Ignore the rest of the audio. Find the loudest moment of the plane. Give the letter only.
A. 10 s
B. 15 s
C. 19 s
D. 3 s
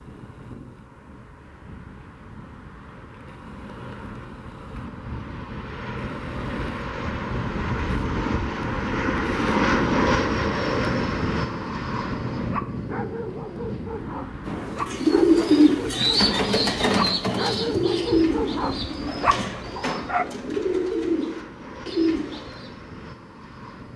A.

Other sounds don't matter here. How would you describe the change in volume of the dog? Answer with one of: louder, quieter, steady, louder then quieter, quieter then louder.
louder.